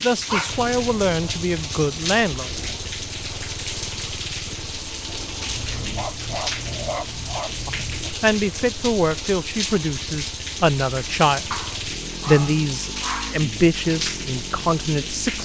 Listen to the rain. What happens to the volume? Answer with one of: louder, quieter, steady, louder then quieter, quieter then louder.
steady.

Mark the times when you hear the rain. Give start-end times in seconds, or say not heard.
0.0-15.3.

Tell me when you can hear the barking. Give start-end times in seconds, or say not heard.
0.2-2.2, 5.5-8.2, 11.5-13.4.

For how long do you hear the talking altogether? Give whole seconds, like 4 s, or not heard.
9 s.